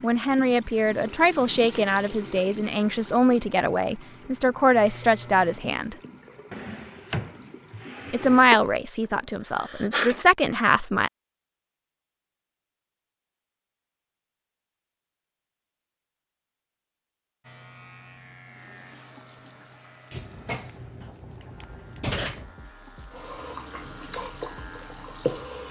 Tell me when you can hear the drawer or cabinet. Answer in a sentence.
You can hear the drawer or cabinet from 6.5 to 8.5 s and from 20.1 to 22.5 s.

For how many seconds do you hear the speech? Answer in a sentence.
You can hear the speech for 9 seconds altogether.